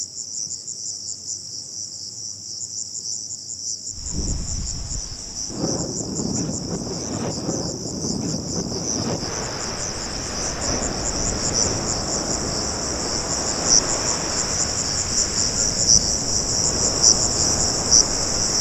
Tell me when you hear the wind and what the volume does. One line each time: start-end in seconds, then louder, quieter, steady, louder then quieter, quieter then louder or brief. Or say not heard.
3.9-18.5 steady.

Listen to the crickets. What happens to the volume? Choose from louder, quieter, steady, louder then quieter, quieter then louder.
louder.